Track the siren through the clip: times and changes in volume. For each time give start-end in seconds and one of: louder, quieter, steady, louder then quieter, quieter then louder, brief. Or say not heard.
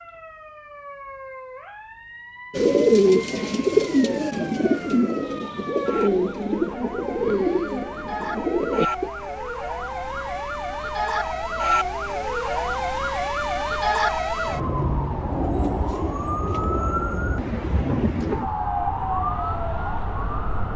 0.0-20.7 louder.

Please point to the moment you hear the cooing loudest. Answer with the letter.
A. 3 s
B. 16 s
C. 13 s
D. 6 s
A.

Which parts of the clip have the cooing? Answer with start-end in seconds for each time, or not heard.
2.5-9.1.